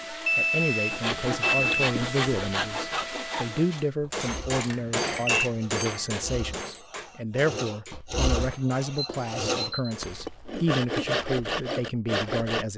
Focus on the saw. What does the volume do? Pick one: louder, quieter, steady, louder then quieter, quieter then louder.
quieter then louder.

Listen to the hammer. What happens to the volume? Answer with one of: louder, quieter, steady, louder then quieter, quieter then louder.
quieter.